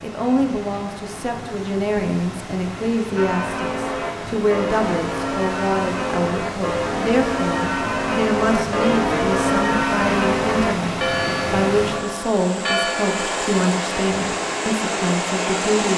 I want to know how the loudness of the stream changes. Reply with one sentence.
The loudness of the stream goes up.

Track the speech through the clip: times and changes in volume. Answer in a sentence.
The speech can be heard from 0.0 to 15.9 s, at a steady volume.